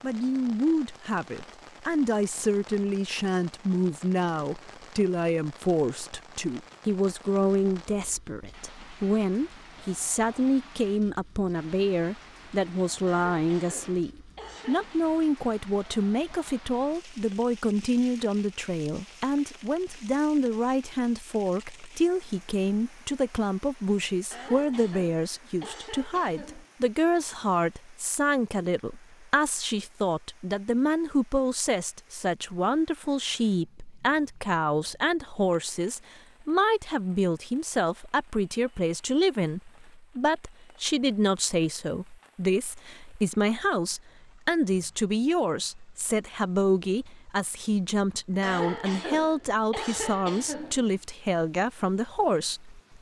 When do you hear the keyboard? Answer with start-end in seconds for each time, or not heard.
not heard.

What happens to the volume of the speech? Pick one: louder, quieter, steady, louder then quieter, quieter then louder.
steady.